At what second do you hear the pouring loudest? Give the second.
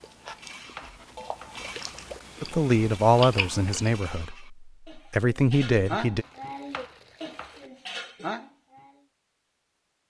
2 s.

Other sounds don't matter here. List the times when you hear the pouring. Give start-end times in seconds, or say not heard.
1.5-2.3, 6.2-7.7.